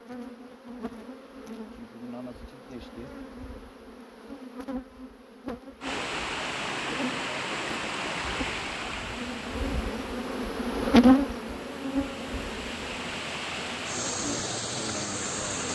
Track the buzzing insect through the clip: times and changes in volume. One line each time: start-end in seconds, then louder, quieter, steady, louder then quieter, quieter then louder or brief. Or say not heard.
0.0-15.6 louder then quieter.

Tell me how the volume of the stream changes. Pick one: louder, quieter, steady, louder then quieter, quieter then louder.
quieter then louder.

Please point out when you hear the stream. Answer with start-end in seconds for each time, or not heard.
5.8-15.6.